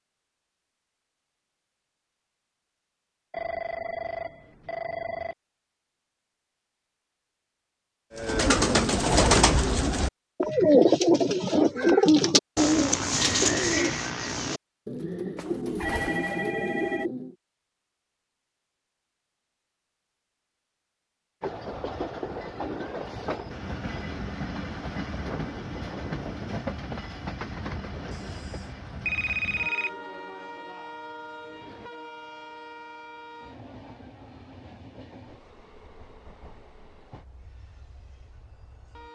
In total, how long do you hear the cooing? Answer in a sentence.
You can hear the cooing for 9 seconds altogether.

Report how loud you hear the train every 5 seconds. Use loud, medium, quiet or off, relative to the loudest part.
off, off, off, off, loud, loud, medium, quiet.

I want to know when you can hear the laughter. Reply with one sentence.
The laughter can't be heard in this clip.